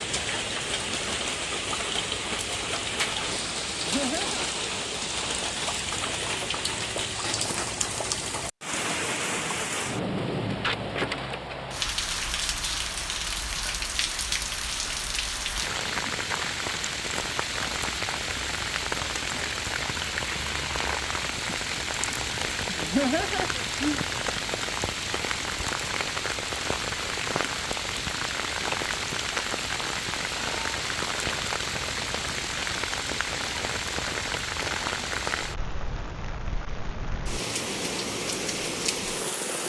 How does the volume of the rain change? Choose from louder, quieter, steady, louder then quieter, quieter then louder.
steady.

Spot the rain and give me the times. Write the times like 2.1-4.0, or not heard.
0.0-39.6.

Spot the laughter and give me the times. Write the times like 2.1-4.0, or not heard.
3.6-4.5, 22.6-24.1.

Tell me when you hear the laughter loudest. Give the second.
23 s.